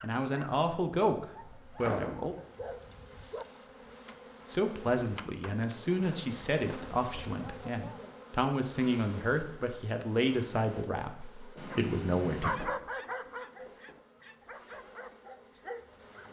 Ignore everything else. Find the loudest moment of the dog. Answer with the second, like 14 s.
13 s.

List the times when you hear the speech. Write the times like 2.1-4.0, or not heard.
0.0-2.4, 4.5-12.6.